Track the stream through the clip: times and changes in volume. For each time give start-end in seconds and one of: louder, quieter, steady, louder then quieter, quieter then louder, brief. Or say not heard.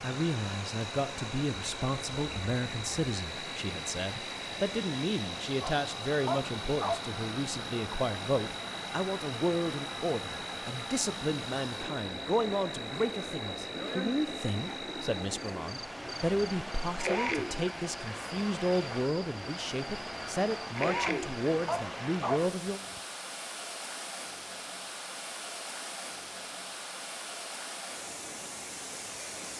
0.0-29.5 steady.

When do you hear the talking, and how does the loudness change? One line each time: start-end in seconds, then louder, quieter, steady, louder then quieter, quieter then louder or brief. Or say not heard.
0.0-22.8 steady.